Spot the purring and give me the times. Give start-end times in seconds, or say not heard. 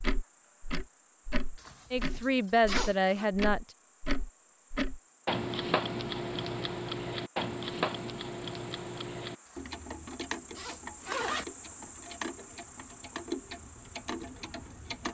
not heard.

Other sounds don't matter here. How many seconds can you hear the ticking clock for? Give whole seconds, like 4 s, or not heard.
15 s.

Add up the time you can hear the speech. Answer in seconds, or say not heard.
2 s.